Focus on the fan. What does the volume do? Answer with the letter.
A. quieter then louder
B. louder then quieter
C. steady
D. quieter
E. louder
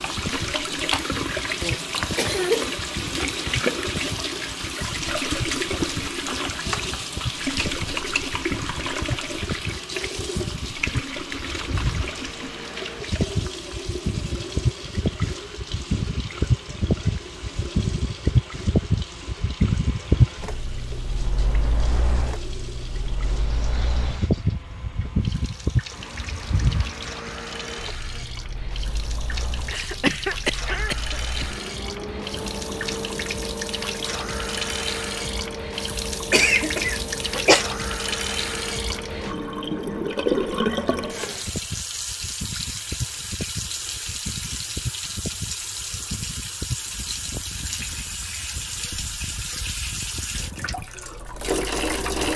B.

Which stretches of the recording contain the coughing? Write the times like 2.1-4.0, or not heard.
1.6-2.7, 29.7-31.4, 36.3-37.6.